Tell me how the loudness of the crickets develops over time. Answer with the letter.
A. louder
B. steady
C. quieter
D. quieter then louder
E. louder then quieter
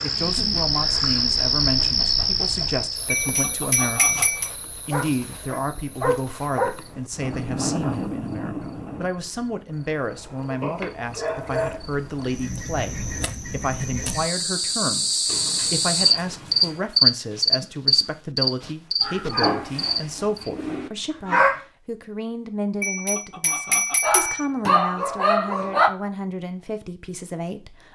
D.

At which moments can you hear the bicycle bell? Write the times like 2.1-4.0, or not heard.
3.0-4.5, 22.8-24.8.